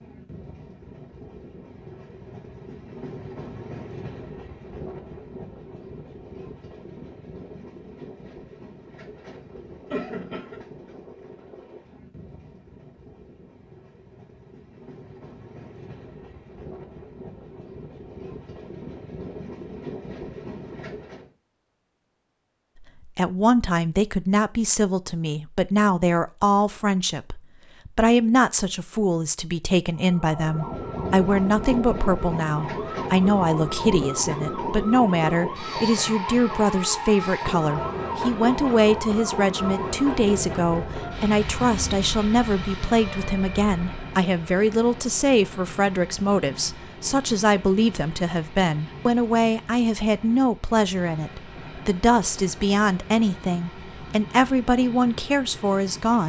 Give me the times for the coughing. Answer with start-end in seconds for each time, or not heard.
9.9-10.6.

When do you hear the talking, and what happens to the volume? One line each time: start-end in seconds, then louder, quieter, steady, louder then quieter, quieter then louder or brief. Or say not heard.
23.1-56.2 steady.